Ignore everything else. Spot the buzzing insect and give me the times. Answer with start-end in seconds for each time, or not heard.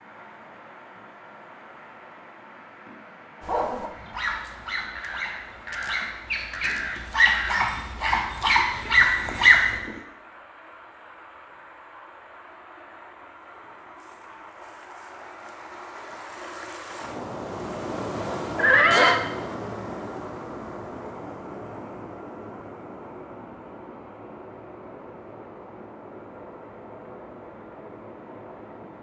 not heard.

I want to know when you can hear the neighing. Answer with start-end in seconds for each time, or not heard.
18.6-19.2.